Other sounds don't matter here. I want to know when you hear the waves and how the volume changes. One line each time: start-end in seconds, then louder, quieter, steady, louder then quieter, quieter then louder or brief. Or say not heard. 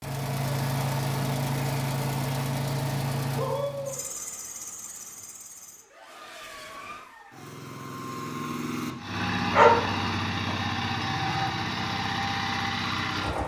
not heard.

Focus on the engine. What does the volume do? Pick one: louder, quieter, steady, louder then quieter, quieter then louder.
quieter then louder.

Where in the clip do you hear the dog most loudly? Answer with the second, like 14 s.
10 s.